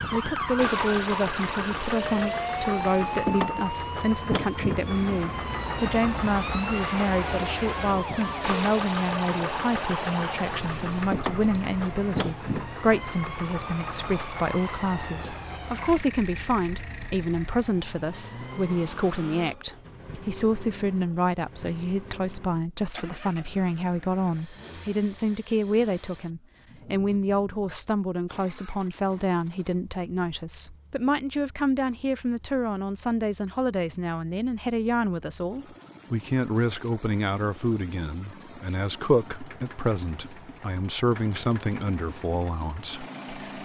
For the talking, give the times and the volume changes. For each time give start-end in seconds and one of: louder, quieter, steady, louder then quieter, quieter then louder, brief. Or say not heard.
0.1-43.6 steady.